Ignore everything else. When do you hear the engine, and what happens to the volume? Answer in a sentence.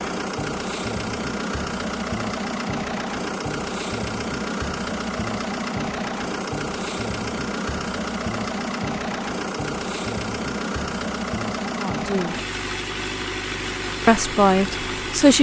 The engine can be heard from 0.0 to 15.3 s, at a steady volume.